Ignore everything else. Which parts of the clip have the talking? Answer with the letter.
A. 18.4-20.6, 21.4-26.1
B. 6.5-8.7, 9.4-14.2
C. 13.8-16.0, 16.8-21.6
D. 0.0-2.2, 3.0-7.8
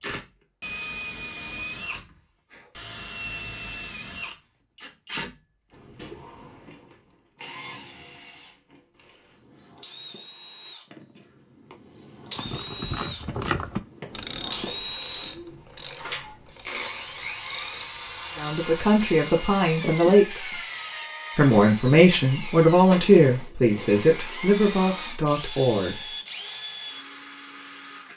A.